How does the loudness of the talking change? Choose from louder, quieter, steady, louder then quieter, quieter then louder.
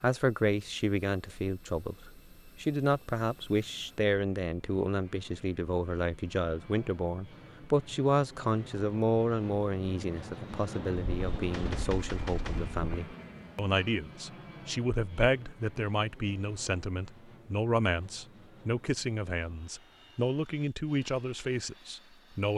steady.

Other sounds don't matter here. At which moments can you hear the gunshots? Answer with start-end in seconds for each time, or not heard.
10.9-12.9.